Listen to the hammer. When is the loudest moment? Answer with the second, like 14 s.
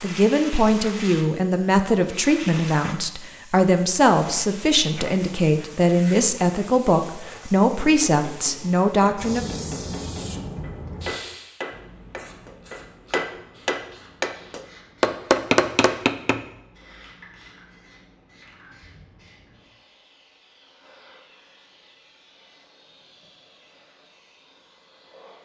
15 s.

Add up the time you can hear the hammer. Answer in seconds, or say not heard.
9 s.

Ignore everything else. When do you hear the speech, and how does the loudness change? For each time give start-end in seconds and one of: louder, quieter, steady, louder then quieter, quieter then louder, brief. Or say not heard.
0.0-9.5 steady.